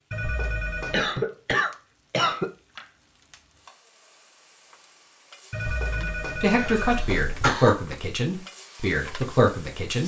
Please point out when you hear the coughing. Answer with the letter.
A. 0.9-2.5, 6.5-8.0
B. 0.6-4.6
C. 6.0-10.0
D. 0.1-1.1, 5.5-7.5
A.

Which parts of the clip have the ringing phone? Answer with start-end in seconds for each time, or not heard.
0.1-1.1, 5.5-7.5.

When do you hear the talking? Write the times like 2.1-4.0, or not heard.
6.0-10.0.